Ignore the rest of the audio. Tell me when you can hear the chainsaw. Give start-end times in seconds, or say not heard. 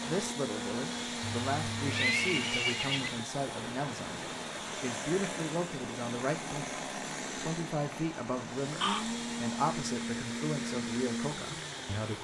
0.0-12.2.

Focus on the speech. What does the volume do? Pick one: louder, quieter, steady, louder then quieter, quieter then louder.
steady.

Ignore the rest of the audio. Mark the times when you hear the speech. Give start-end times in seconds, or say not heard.
0.0-12.2.